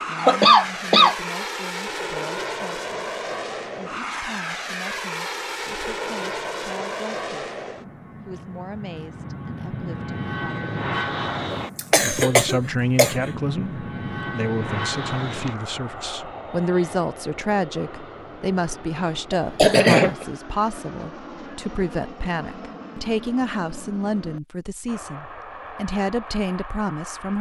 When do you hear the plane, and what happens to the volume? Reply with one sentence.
You can hear the plane from 0.0 to 27.3 s, getting quieter.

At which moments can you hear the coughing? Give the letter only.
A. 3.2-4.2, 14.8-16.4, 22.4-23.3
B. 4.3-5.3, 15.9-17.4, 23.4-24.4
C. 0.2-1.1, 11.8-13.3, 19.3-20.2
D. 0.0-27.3
C.